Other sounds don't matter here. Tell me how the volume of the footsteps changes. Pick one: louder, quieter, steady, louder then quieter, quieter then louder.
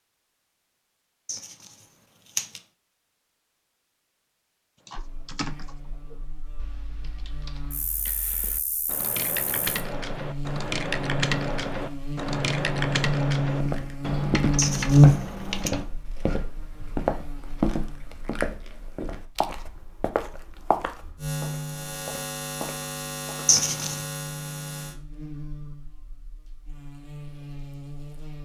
quieter.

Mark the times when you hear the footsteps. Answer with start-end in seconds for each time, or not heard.
13.6-23.4.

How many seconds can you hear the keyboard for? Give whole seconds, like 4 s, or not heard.
11 s.